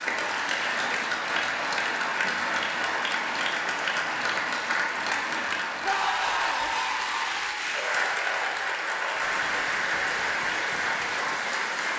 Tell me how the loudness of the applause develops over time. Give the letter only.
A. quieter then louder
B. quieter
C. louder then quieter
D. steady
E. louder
D.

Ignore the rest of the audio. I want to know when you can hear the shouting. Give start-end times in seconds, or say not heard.
5.8-6.7.